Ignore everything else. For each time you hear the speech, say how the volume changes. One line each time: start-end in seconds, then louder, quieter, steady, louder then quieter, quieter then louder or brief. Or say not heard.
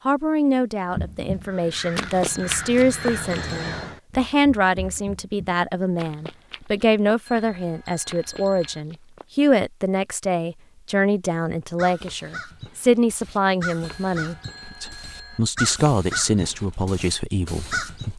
0.1-18.1 steady.